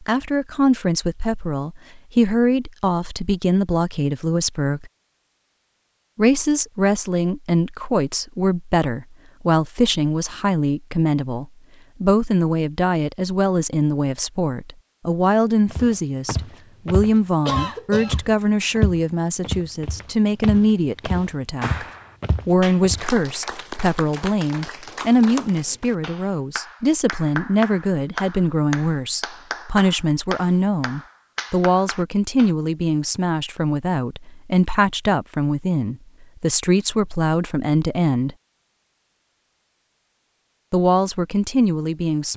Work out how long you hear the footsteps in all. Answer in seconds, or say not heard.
7 s.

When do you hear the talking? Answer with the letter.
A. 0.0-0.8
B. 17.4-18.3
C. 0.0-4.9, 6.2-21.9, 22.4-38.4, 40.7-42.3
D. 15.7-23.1
C.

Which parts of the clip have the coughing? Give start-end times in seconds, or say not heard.
17.4-18.3.